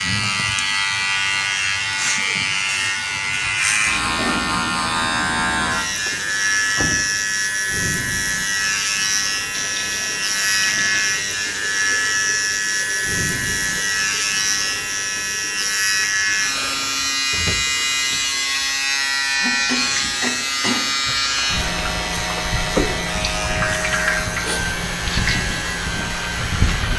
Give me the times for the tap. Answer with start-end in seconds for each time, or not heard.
9.5-26.9.